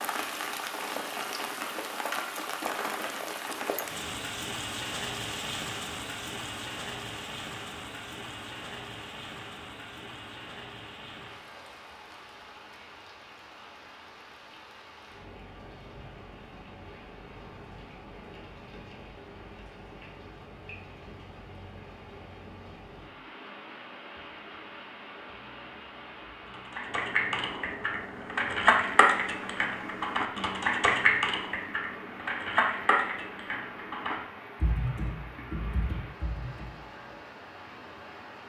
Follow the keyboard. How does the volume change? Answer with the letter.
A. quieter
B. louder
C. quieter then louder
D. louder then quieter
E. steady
A.